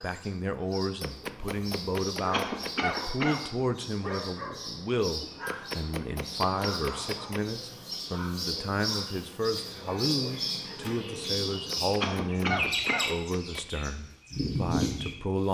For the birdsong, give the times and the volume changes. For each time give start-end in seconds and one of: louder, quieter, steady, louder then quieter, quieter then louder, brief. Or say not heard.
0.0-15.4 louder.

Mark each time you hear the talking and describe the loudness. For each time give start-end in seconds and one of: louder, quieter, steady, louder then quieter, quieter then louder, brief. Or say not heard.
0.0-15.4 steady.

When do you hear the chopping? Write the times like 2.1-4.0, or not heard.
1.0-2.8, 5.5-7.4, 11.7-13.7.